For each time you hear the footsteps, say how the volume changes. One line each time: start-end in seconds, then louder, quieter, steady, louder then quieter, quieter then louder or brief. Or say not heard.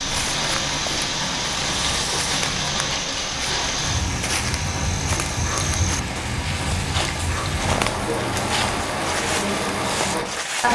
0.0-10.7 steady.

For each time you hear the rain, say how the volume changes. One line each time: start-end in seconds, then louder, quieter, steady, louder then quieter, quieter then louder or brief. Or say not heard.
0.0-10.7 steady.